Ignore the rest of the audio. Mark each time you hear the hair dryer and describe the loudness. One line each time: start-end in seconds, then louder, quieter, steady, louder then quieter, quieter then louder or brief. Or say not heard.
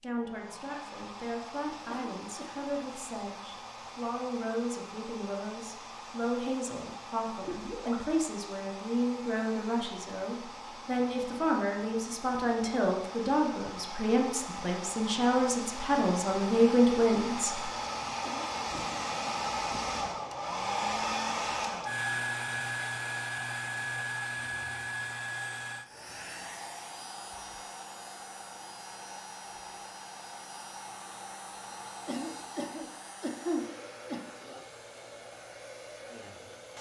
0.0-36.7 louder then quieter.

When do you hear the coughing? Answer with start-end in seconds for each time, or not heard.
1.9-2.7, 18.2-19.0, 32.0-34.2.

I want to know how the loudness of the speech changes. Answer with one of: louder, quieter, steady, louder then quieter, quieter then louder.
louder.